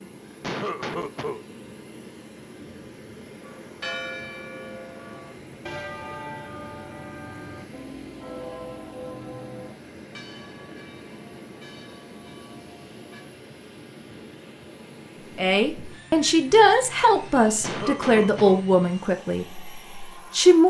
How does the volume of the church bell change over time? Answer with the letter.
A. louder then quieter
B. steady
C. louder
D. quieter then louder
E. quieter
E.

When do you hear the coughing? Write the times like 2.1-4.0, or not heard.
0.4-1.4, 17.6-18.6.